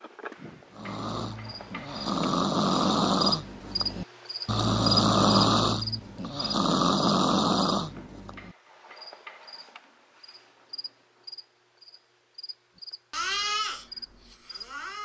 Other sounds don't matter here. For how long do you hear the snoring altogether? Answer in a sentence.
You can hear the snoring for 10 seconds altogether.